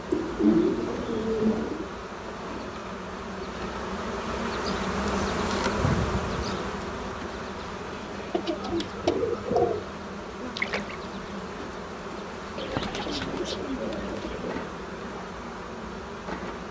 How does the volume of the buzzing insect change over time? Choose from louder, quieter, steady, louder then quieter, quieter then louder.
louder then quieter.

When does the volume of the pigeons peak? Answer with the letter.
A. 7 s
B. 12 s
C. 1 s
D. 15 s
C.